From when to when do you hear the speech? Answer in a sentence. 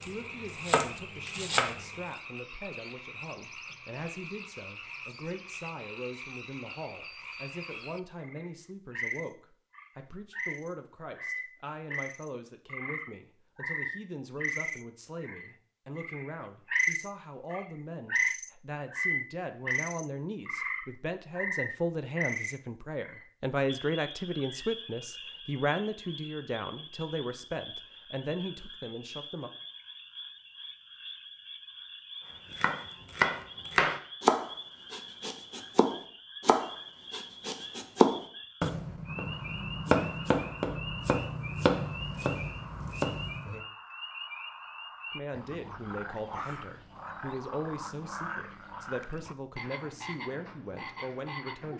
You can hear the speech from 0.1 to 29.5 s and from 45.1 to 51.7 s.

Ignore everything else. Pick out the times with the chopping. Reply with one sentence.
The chopping can be heard from 0.0 to 1.8 s and from 32.5 to 43.6 s.